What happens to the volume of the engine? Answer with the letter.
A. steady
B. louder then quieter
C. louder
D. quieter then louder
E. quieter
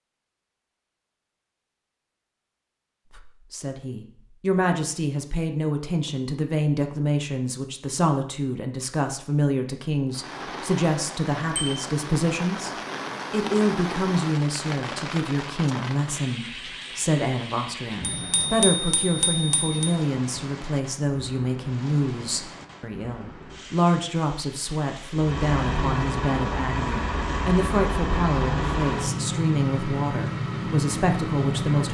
A.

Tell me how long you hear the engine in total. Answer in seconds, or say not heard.
7 s.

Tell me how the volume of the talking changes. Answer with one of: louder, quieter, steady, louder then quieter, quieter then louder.
steady.